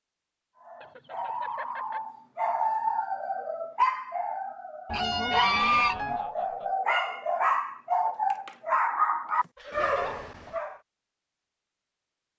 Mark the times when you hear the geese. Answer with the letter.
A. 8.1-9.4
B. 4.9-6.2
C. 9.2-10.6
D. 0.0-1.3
B.